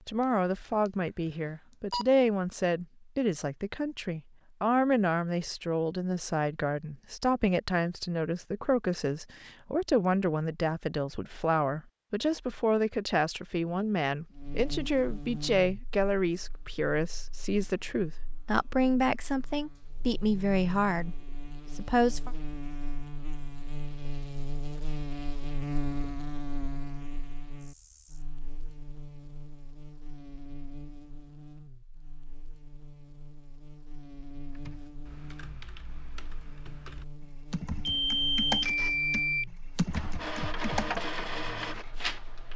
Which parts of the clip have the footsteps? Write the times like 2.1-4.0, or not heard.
not heard.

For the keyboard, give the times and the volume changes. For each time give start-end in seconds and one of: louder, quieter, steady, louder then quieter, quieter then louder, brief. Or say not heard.
34.5-41.0 louder.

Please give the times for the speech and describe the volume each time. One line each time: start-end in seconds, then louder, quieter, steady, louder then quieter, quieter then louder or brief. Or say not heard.
0.1-21.1 steady
21.8-22.3 brief.